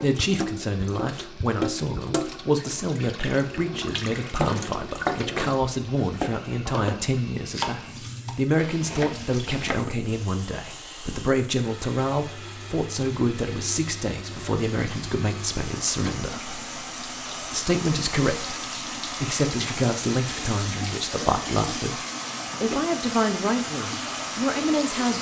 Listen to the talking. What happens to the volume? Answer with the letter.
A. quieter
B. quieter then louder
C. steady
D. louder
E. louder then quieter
C.